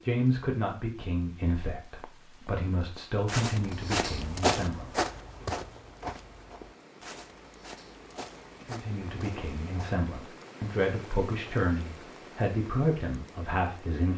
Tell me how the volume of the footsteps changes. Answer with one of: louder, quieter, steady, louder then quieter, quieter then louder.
louder then quieter.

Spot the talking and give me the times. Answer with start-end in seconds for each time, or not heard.
0.0-5.5, 8.7-14.1.